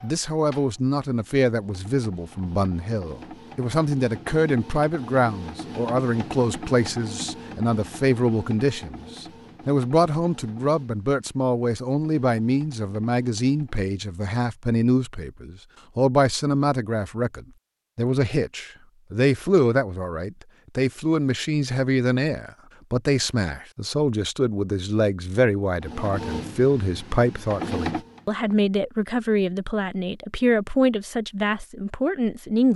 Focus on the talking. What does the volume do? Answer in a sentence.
The loudness of the talking stays about the same.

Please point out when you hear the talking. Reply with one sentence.
You can hear the talking from 0.0 to 32.7 s.